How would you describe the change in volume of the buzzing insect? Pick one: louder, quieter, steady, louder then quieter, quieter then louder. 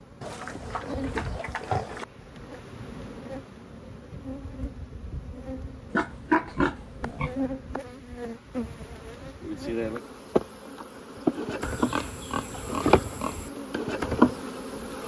louder.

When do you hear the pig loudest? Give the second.
6 s.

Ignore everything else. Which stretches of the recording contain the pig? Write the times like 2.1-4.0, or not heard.
0.2-2.0, 5.9-7.3, 11.6-13.5.